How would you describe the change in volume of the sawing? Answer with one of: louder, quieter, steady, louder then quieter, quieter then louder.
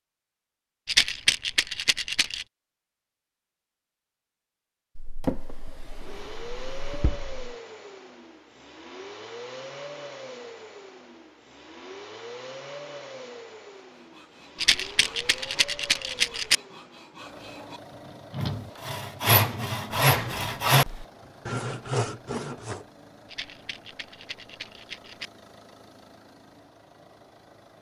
louder.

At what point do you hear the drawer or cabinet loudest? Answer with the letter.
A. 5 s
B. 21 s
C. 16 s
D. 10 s
A.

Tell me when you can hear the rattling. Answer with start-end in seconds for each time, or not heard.
0.8-2.5, 14.6-16.6, 23.3-25.3.